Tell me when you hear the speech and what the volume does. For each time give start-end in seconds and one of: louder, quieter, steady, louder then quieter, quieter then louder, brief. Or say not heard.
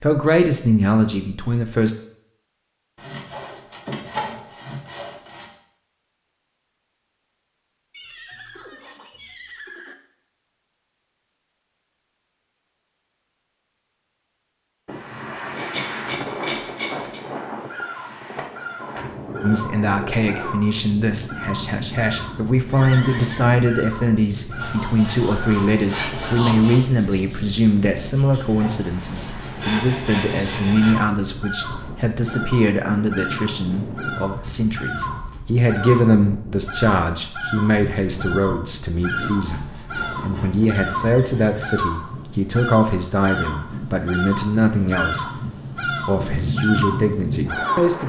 0.0-1.9 brief
19.4-45.2 steady
45.9-48.0 brief.